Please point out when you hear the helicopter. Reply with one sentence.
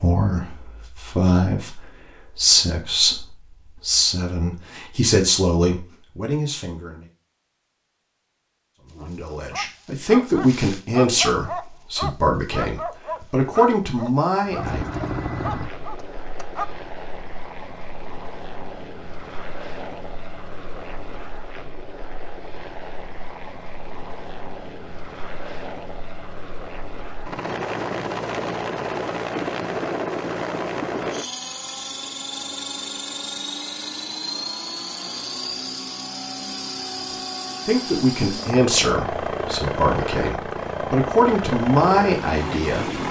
The helicopter can be heard from 14.4 to 43.0 s.